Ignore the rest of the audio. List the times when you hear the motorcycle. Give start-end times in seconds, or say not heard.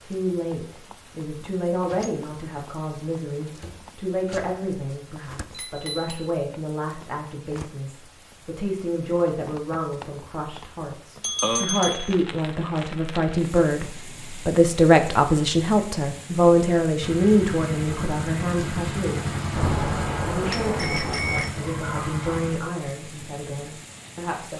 17.0-22.6.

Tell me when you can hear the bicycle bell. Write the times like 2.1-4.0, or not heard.
5.5-6.2, 11.2-12.2, 19.6-21.5.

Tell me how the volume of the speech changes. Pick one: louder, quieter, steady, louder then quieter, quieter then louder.
louder then quieter.